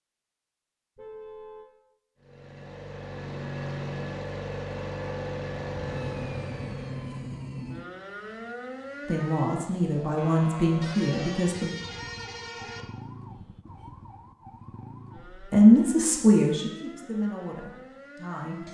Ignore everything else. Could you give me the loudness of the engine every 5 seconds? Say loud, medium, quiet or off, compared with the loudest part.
loud, loud, off, off.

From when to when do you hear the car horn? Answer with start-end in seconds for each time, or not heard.
0.9-1.7, 10.8-12.8.